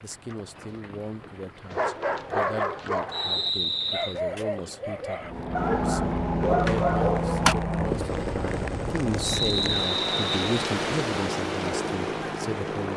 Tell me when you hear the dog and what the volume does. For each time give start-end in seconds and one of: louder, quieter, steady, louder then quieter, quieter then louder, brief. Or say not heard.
1.7-7.5 quieter then louder.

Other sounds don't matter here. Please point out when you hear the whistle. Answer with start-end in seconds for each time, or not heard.
3.1-4.2, 9.2-10.7.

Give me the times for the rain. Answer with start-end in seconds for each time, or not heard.
0.0-12.9.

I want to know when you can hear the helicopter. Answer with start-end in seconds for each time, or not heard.
5.2-12.9.